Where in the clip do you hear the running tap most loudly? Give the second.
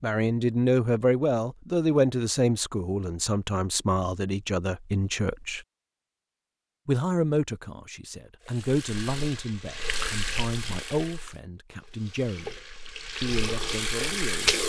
14 s.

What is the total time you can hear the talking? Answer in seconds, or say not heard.
13 s.